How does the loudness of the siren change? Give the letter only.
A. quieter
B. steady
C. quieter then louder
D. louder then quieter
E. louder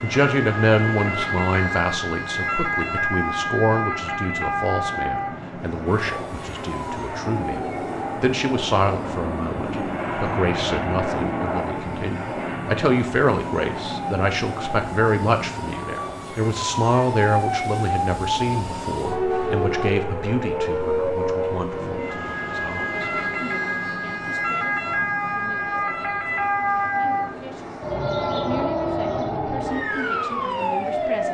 C.